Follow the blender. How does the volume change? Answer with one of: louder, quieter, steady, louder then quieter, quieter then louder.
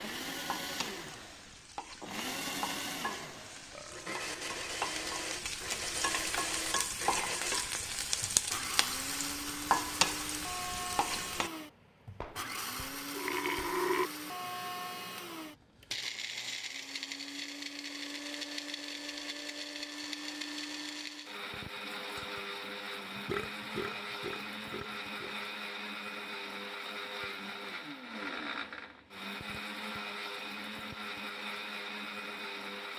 steady.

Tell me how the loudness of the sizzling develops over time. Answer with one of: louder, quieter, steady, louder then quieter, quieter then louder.
louder.